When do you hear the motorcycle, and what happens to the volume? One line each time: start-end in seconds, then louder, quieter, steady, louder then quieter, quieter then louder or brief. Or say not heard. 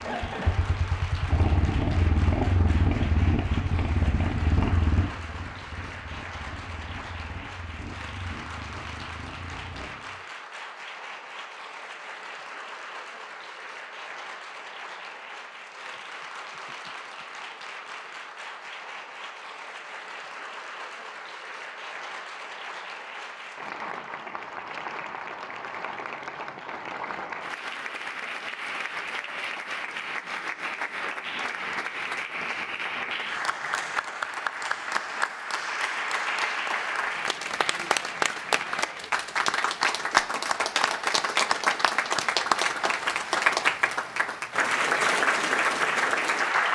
0.0-10.2 quieter.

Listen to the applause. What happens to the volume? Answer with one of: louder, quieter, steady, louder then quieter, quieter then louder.
louder.